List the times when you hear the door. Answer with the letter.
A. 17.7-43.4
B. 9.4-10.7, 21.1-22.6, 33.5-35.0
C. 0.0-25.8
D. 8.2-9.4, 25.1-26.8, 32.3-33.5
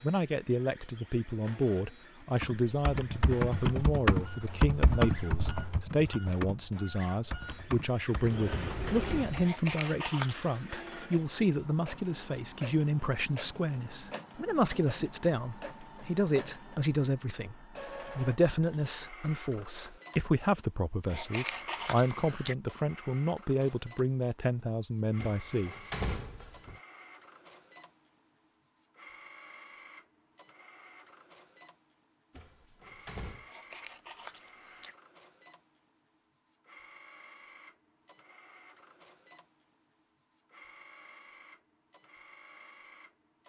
D.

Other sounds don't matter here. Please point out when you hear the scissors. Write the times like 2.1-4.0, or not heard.
9.4-10.7, 21.1-22.6, 33.5-35.0.